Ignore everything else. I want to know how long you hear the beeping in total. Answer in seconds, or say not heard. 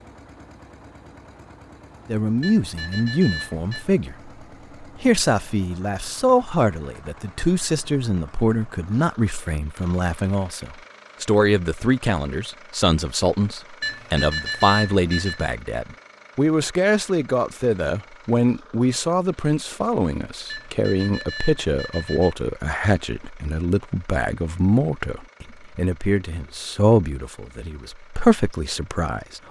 5 s.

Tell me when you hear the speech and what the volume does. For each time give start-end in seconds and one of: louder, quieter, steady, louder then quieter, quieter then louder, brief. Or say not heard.
2.0-29.4 steady.